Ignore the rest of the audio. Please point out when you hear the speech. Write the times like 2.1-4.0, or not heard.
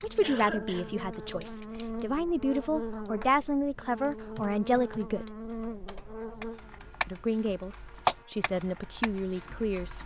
0.0-5.3, 7.0-10.0.